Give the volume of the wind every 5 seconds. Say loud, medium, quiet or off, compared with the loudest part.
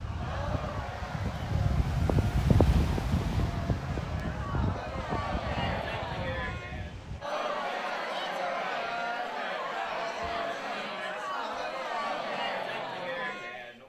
loud, medium, off.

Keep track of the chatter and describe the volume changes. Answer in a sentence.
The loudness of the chatter goes up.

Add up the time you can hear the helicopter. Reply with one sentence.
The helicopter can't be heard in this clip.